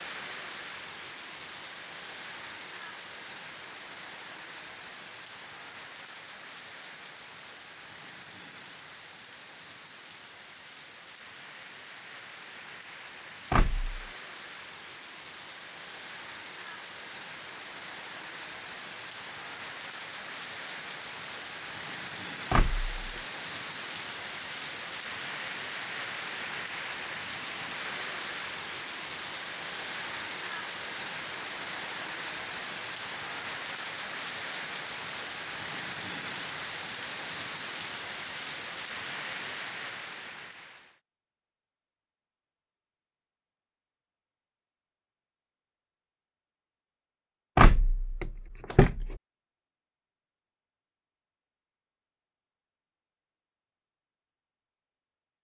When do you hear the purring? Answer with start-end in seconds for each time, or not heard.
not heard.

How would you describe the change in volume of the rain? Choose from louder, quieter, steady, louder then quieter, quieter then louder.
louder.